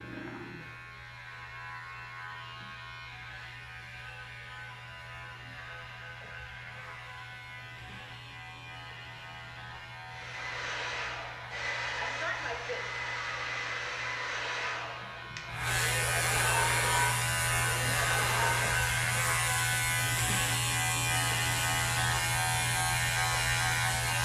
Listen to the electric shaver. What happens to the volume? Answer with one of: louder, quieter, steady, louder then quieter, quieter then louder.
louder.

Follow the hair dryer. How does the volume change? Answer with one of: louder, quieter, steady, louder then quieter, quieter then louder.
steady.